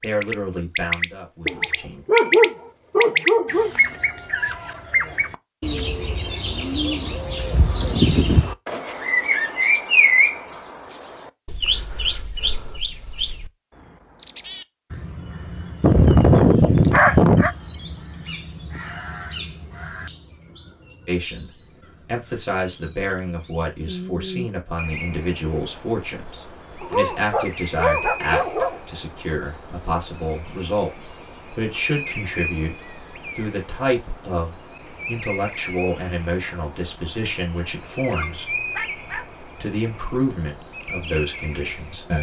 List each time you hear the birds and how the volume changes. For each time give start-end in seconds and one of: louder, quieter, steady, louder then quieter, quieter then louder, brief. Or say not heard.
0.0-42.1 quieter.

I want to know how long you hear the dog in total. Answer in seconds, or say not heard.
7 s.